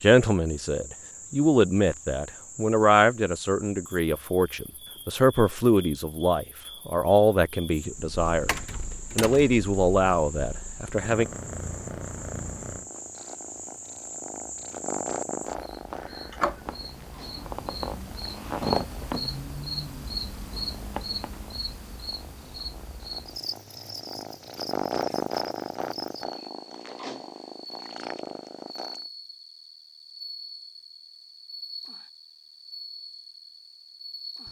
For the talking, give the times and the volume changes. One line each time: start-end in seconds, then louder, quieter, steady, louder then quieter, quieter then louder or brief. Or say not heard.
0.0-11.2 steady.